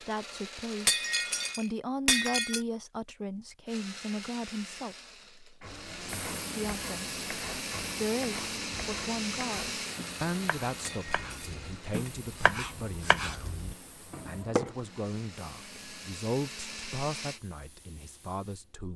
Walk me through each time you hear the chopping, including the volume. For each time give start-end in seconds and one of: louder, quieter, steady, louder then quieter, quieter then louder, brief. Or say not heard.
5.6-14.8 louder.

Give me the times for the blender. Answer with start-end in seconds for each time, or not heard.
0.0-1.6, 3.6-17.4.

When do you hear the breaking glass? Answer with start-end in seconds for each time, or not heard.
0.8-2.6, 10.8-12.1.